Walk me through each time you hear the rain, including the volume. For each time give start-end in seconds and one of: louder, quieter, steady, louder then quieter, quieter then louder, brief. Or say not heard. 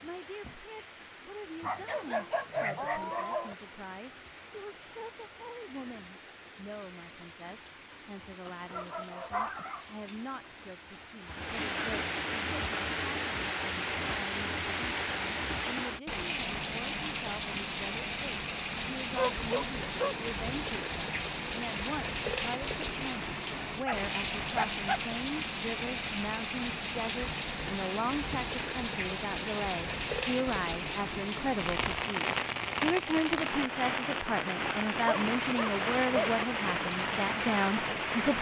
0.0-38.3 louder.